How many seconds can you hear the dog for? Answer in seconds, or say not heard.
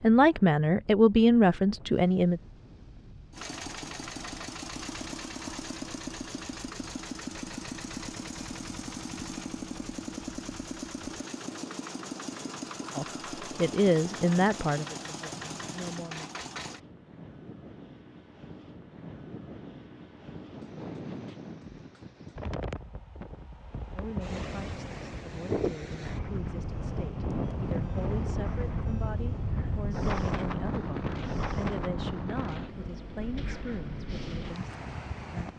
not heard.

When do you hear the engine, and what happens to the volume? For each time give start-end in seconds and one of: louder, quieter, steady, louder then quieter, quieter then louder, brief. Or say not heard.
3.3-16.8 steady.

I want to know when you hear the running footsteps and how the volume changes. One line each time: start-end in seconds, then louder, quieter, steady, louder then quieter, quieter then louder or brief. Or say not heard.
not heard.